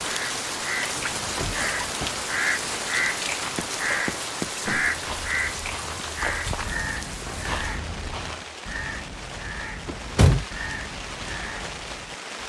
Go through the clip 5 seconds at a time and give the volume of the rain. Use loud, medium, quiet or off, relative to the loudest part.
loud, medium, medium.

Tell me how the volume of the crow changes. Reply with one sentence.
The volume of the crow goes down.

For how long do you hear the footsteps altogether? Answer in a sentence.
The footsteps can be heard for 5 seconds in total.